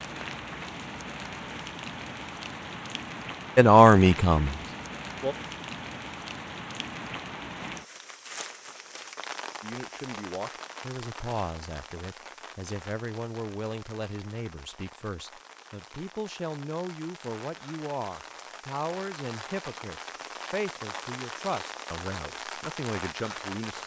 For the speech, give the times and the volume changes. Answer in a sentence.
You can hear the speech briefly from 3.5 to 5.3 s; and from 9.6 to 23.8 s, at a steady volume.